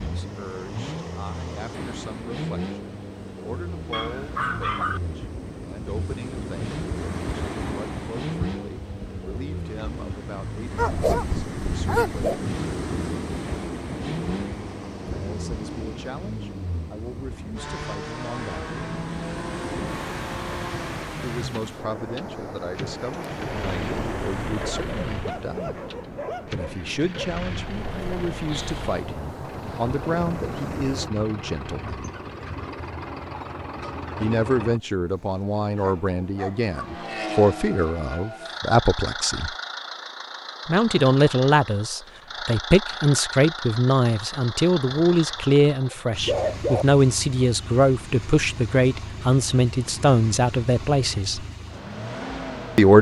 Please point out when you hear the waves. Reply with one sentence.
The waves can be heard from 0.0 to 31.1 s.